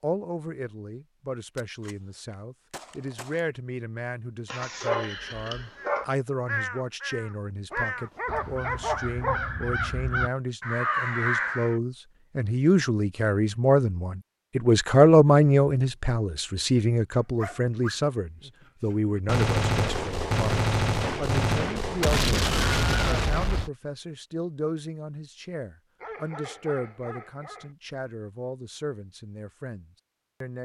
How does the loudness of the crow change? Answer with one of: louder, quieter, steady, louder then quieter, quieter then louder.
quieter then louder.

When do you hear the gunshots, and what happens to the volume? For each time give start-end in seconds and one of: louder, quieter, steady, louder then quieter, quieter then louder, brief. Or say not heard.
1.6-3.4 brief
19.2-23.7 steady.